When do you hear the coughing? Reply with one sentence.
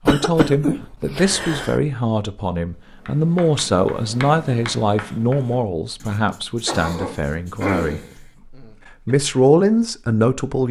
You can hear the coughing from 0.1 to 1.8 s and from 6.7 to 9.2 s.